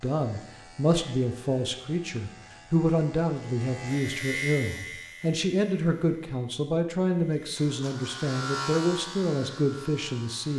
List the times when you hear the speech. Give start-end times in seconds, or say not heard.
0.0-10.5.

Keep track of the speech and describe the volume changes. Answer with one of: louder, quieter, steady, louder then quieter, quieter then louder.
steady.